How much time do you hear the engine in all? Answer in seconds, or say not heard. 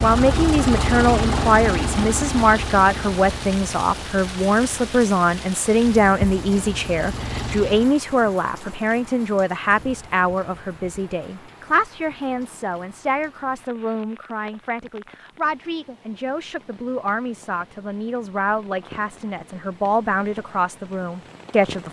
8 s.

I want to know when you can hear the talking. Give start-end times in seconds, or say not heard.
0.0-21.8.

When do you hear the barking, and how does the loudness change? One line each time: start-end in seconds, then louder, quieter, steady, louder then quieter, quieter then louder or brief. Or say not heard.
not heard.